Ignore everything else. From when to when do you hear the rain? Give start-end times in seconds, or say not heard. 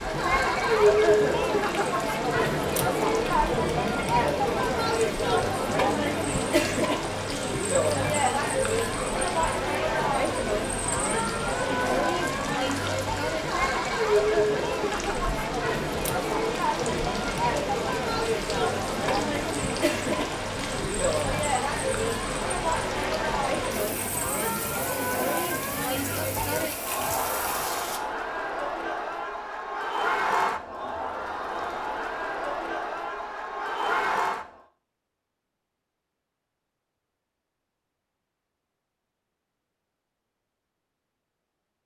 0.0-28.0.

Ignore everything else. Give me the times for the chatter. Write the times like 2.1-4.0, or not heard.
0.0-34.6.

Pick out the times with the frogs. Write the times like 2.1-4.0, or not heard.
not heard.